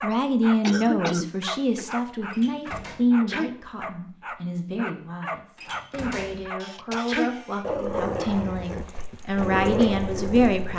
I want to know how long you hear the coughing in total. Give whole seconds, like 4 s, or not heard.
2 s.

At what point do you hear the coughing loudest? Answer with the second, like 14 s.
1 s.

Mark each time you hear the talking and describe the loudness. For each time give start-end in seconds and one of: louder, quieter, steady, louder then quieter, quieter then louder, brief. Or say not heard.
0.0-10.7 quieter then louder.